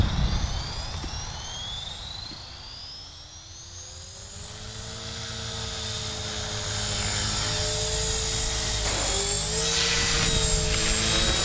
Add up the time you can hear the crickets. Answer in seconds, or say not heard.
not heard.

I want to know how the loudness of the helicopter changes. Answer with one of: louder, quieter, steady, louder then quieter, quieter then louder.
quieter then louder.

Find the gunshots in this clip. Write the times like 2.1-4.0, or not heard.
8.8-9.3.